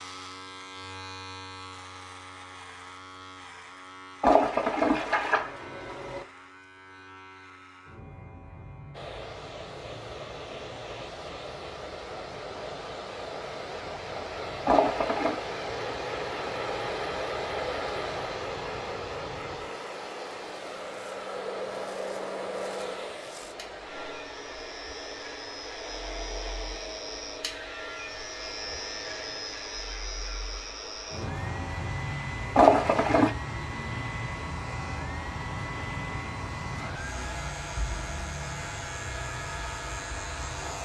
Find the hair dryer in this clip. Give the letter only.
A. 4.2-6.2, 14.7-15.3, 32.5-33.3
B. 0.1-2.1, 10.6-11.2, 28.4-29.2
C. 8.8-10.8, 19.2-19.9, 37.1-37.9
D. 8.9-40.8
D.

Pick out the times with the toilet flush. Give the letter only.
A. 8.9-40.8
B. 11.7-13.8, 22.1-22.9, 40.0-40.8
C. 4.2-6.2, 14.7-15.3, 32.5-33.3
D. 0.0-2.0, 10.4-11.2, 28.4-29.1
C.